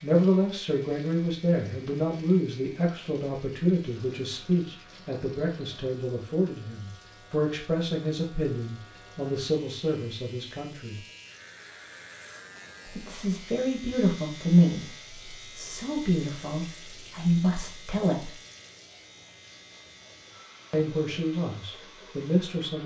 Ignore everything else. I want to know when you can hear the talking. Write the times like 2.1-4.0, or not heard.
0.0-11.0, 12.8-18.3, 20.7-22.8.